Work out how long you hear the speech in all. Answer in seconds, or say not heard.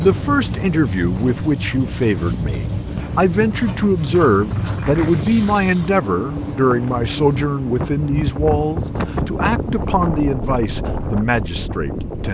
12 s.